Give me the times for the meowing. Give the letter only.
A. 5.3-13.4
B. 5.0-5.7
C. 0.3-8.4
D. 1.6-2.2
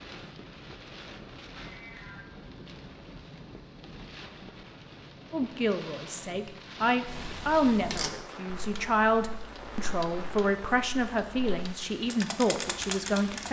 D.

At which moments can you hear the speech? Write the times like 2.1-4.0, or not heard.
5.3-13.4.